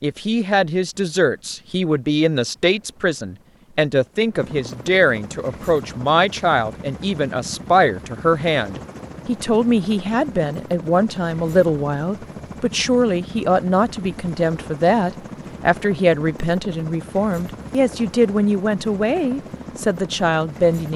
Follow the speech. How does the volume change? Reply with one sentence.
The volume of the speech stays about the same.